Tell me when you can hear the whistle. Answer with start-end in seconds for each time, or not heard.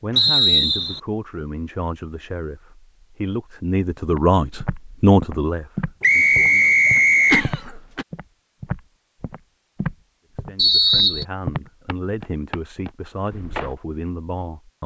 0.1-1.0, 6.0-7.5, 10.6-11.2.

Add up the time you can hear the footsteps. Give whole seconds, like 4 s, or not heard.
10 s.